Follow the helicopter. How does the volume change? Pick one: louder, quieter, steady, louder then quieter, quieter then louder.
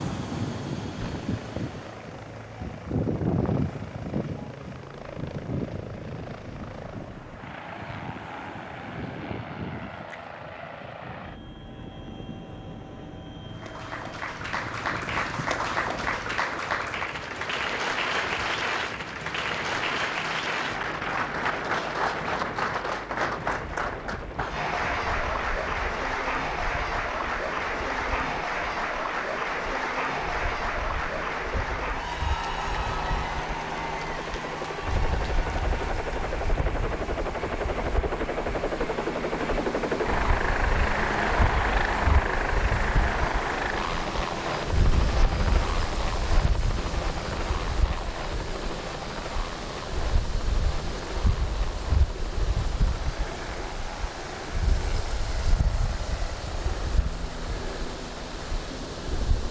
louder then quieter.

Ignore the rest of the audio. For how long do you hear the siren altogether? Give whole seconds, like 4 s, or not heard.
not heard.